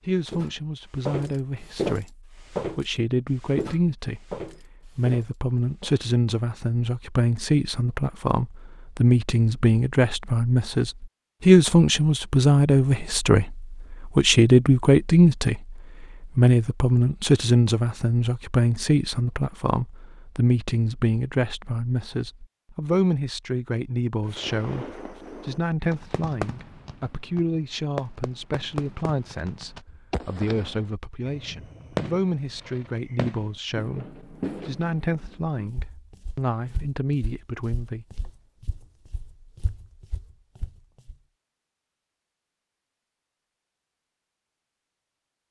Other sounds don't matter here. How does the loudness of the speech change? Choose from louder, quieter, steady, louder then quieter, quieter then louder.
louder then quieter.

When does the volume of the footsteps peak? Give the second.
2 s.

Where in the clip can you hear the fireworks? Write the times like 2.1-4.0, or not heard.
24.2-35.7.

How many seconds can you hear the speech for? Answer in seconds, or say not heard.
38 s.